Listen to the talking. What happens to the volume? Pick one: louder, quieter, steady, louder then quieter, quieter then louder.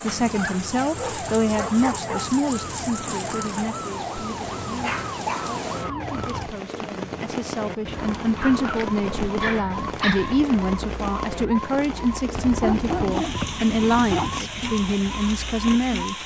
quieter then louder.